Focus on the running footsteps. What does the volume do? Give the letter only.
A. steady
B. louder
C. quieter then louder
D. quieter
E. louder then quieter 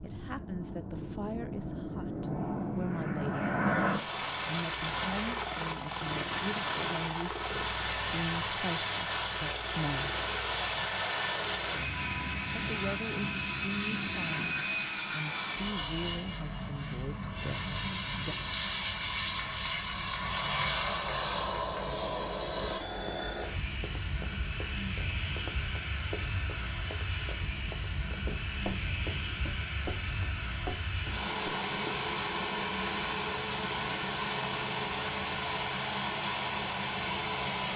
B.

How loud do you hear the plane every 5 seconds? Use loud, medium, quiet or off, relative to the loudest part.
loud, loud, loud, loud, loud, medium, loud, loud.